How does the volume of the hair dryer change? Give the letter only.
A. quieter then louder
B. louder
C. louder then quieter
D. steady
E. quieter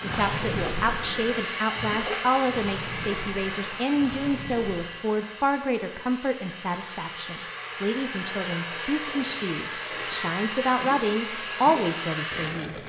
A.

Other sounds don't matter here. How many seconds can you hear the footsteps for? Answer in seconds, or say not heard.
not heard.